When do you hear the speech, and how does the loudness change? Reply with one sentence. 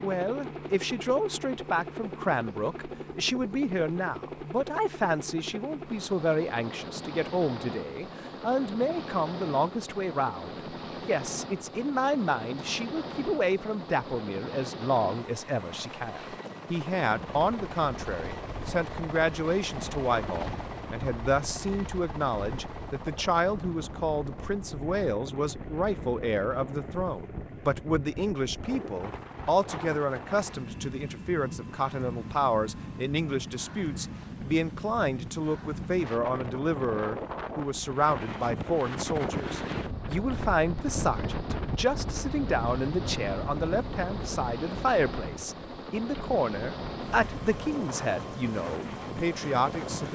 You can hear the speech from 0.0 to 50.1 s, at a steady volume.